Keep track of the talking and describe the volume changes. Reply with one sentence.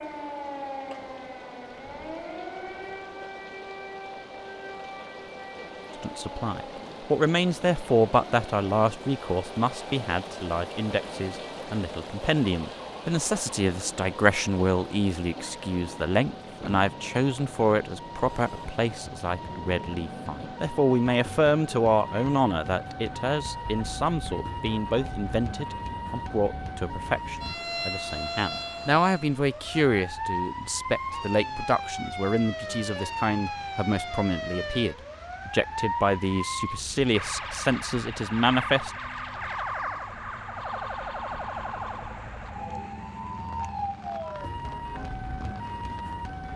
The loudness of the talking stays about the same.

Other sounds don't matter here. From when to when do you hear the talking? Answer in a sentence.
The talking can be heard from 6.0 to 38.9 s.